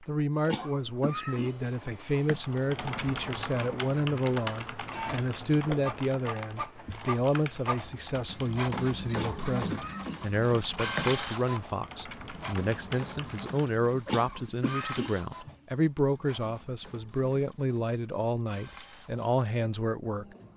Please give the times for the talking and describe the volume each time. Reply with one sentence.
The talking can be heard from 0.0 to 20.2 s, at a steady volume.